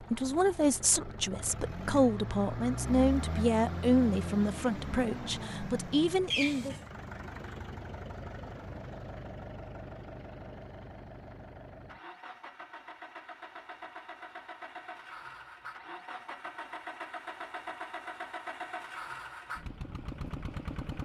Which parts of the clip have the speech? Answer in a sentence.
The speech can be heard from 0.0 to 6.8 s.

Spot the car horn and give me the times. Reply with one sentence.
The car horn can be heard from 6.3 to 6.9 s.